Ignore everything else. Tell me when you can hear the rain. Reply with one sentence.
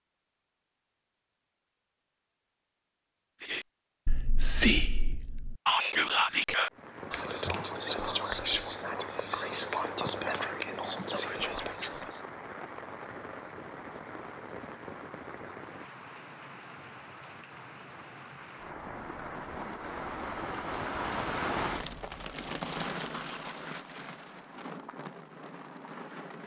The rain can be heard from 6.7 to 26.4 s.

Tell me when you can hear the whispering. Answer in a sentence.
The whispering can be heard from 3.5 to 12.2 s.